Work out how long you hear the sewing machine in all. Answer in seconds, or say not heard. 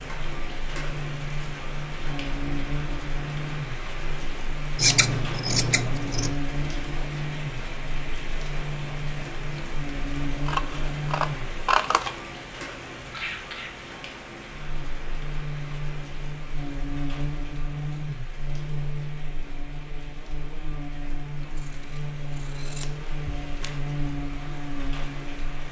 not heard.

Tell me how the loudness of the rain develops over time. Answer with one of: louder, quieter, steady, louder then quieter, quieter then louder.
quieter.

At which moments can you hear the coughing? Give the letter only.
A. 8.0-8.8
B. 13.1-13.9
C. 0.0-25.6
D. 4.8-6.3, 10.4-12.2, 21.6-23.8
B.